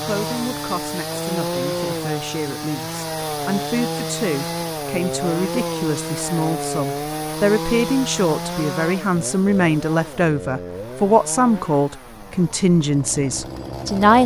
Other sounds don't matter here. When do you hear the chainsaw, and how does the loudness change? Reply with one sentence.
The chainsaw can be heard from 0.0 to 14.2 s, getting quieter.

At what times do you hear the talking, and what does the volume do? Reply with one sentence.
You can hear the talking from 0.0 to 14.2 s, getting louder.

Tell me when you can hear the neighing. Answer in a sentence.
You can't hear the neighing here.